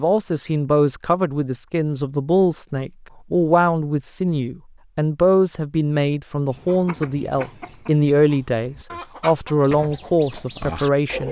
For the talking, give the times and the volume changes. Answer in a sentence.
The talking can be heard from 0.0 to 11.2 s, at a steady volume.